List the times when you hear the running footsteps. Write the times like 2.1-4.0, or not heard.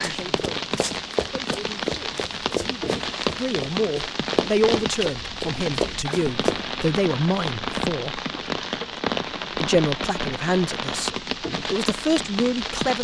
0.0-6.7.